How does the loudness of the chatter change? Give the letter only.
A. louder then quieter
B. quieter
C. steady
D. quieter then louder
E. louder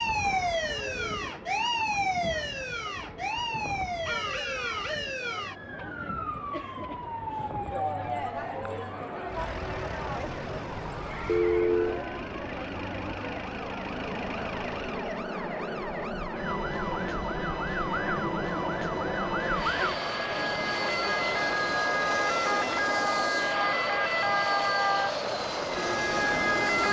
E.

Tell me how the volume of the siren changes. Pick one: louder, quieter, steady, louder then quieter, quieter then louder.
quieter then louder.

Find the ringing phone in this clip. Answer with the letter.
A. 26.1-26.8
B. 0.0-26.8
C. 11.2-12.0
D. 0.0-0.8
C.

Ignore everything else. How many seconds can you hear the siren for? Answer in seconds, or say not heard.
27 s.